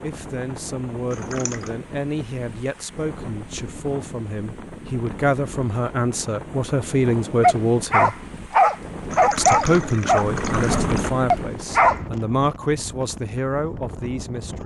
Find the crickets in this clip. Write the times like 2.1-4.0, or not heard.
not heard.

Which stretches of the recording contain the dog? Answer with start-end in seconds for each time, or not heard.
7.4-12.0.